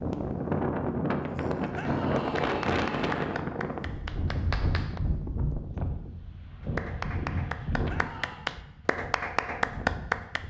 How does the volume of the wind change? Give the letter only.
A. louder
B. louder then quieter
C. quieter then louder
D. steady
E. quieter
E.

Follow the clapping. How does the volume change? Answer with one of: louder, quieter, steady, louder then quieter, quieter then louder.
louder.